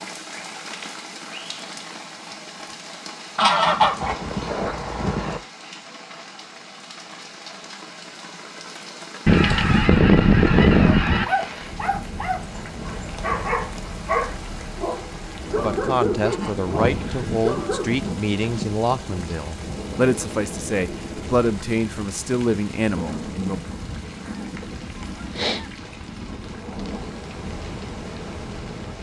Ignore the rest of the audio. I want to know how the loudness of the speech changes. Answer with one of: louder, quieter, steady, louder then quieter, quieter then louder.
steady.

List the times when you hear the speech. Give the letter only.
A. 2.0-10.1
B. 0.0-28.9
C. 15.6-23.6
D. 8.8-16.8
C.